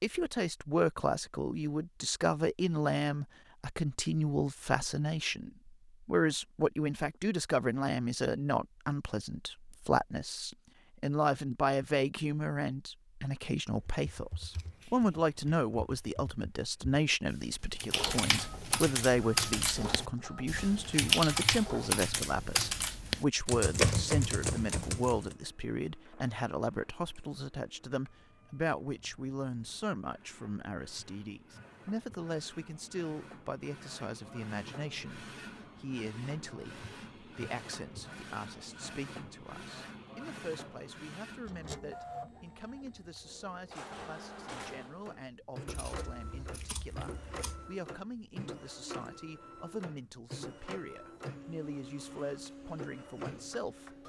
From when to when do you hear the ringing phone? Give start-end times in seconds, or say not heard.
not heard.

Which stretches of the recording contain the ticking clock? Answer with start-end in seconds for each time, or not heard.
not heard.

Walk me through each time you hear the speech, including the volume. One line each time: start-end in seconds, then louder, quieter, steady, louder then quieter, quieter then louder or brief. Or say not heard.
0.0-54.0 quieter.